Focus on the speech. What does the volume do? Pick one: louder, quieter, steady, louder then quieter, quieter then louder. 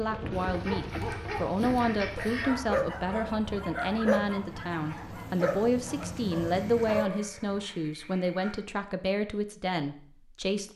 steady.